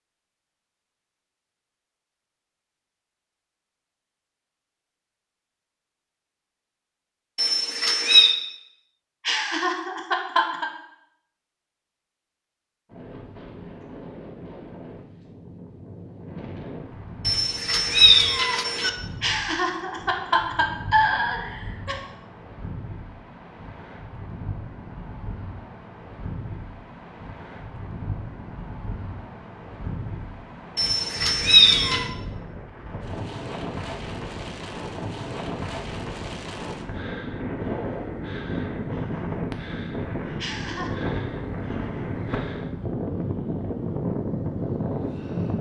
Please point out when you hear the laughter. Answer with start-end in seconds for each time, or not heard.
9.2-10.7, 19.2-22.0, 40.4-41.0.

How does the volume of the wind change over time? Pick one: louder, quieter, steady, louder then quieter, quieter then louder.
louder.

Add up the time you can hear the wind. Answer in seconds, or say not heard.
33 s.